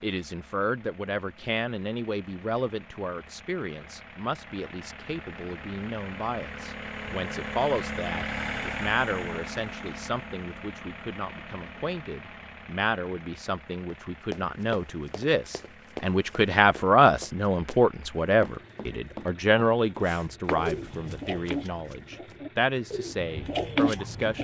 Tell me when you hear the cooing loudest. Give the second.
24 s.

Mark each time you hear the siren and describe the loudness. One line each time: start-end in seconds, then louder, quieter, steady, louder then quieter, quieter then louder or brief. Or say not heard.
not heard.